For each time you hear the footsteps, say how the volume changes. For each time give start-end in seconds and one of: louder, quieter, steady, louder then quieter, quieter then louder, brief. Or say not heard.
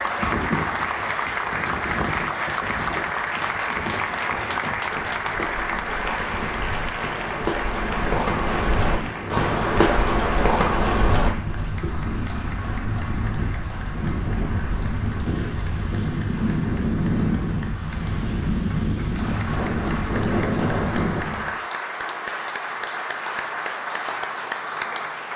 2.8-12.1 louder.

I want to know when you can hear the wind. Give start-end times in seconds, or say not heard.
0.0-21.6.